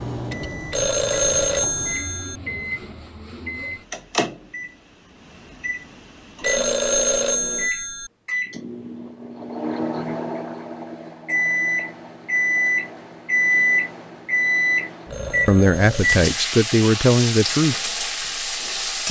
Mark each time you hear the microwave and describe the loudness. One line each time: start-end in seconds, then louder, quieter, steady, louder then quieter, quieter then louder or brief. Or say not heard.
0.0-16.3 louder.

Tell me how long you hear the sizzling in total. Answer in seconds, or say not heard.
3 s.